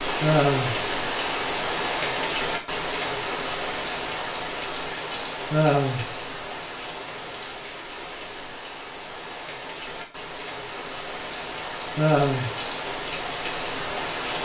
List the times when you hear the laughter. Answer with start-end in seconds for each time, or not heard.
0.2-0.8, 5.5-6.0, 11.9-12.5.